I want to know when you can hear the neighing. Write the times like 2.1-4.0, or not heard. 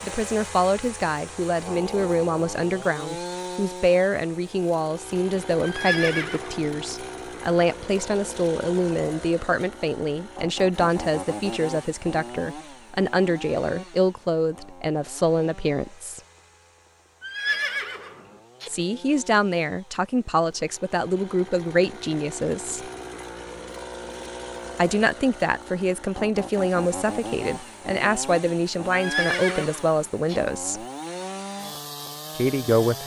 5.6-6.7, 17.2-18.7, 28.9-30.4.